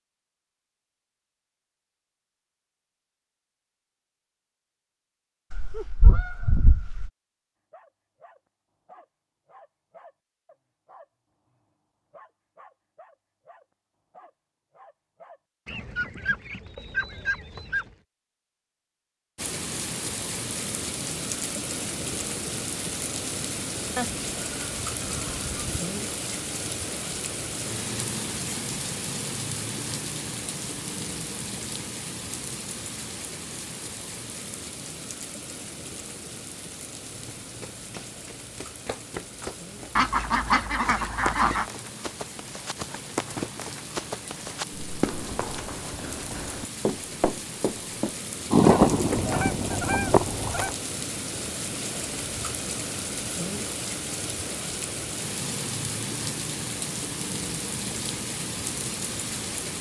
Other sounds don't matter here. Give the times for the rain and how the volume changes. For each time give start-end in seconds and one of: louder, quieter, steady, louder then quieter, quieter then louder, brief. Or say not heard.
19.4-59.7 quieter then louder.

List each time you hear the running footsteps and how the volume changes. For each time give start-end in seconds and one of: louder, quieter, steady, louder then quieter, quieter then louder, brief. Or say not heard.
37.1-48.1 louder.